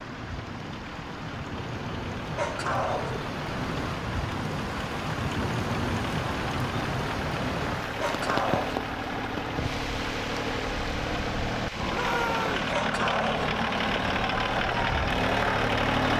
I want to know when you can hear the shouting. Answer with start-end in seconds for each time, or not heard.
11.9-12.7.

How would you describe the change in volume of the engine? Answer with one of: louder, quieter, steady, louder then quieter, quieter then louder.
louder.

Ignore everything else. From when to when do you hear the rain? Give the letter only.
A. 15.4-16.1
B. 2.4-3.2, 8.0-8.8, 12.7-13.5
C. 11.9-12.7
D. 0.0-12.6
D.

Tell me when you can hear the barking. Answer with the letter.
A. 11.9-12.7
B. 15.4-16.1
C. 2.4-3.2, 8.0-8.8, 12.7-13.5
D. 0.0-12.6
C.